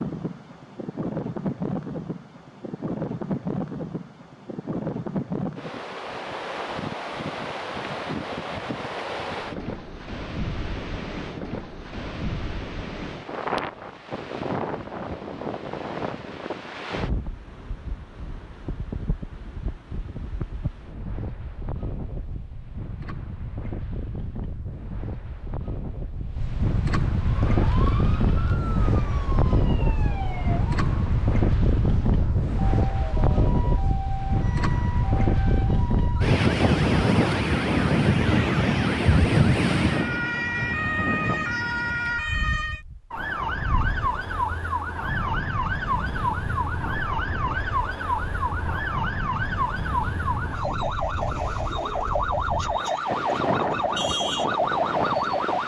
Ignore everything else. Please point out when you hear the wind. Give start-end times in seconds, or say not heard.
0.0-55.6.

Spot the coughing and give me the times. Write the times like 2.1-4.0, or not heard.
not heard.